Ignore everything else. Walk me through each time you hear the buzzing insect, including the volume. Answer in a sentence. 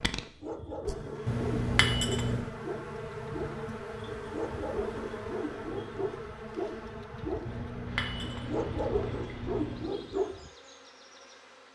The buzzing insect can be heard from 0.0 to 11.6 s, getting quieter.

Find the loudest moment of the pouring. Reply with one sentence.
The loudest moment of the pouring is at 2 seconds.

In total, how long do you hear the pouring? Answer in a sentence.
You can hear the pouring for 4 seconds altogether.